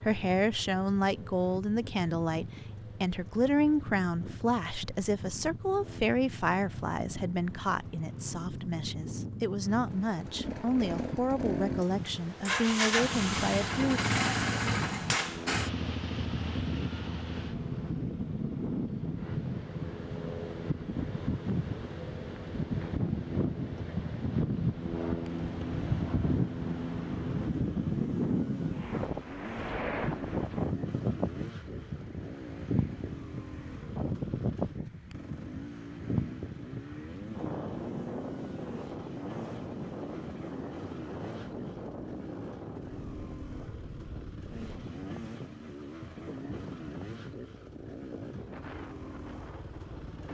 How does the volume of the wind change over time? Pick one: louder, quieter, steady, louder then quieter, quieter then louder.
louder then quieter.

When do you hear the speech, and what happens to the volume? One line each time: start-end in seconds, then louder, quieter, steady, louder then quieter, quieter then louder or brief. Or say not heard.
0.0-14.0 steady.